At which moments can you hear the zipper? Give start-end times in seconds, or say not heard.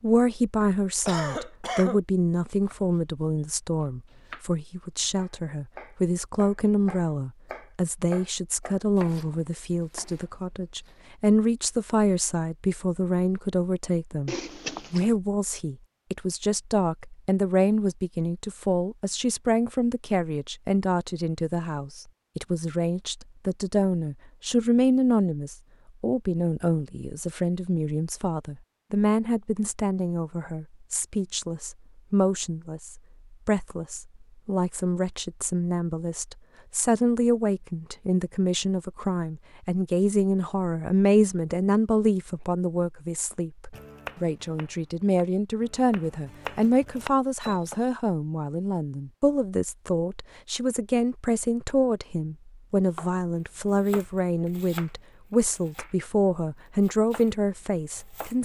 14.2-15.1.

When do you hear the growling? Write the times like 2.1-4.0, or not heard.
not heard.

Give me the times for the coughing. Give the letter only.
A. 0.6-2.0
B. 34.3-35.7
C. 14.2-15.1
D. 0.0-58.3
A.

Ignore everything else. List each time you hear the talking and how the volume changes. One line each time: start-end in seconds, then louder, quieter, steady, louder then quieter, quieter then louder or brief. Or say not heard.
0.0-58.3 steady.